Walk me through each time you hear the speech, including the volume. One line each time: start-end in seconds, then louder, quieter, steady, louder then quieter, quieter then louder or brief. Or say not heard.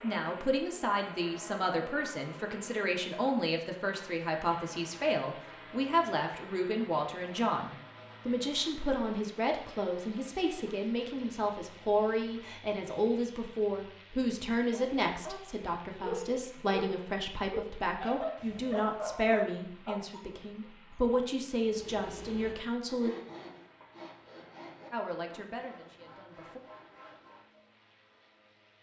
0.0-23.1 steady
24.9-26.6 brief.